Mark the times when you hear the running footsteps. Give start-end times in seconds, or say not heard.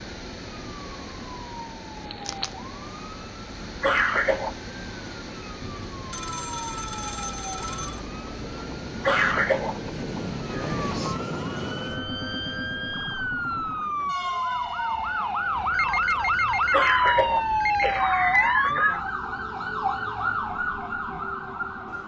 not heard.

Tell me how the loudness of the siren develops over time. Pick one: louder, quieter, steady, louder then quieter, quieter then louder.
louder.